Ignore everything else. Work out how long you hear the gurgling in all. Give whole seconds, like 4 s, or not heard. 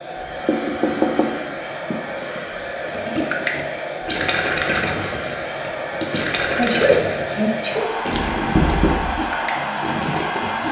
8 s.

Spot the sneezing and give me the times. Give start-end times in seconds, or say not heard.
6.0-7.9.